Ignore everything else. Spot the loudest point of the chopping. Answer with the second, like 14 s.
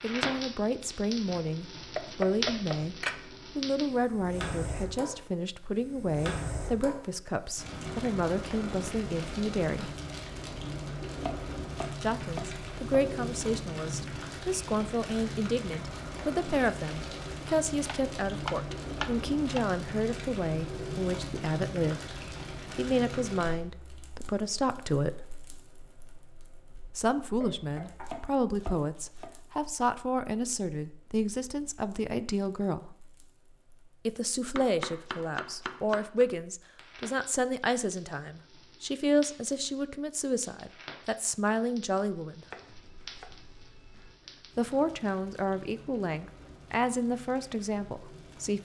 2 s.